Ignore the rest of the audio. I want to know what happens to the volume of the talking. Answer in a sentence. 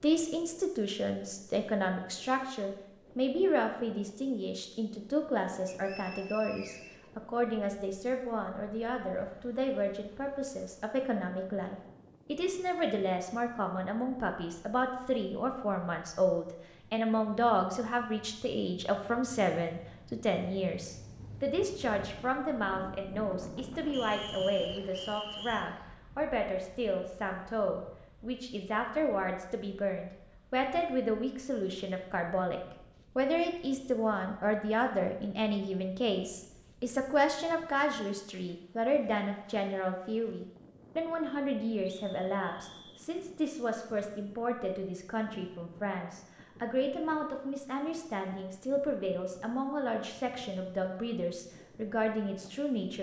The loudness of the talking stays about the same.